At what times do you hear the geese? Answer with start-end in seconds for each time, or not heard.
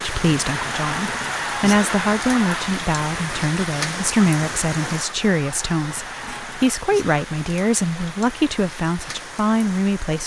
0.4-2.8, 5.2-6.8.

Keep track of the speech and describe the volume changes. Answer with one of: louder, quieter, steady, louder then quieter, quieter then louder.
steady.